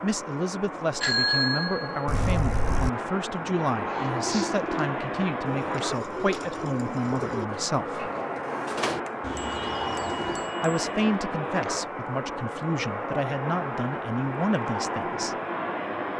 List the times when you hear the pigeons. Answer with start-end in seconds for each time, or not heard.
3.8-10.6.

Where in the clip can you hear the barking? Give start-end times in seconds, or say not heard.
not heard.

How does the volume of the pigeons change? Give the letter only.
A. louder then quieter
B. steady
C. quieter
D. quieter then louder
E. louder
C.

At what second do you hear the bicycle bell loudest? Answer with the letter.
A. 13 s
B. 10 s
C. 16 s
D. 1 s
D.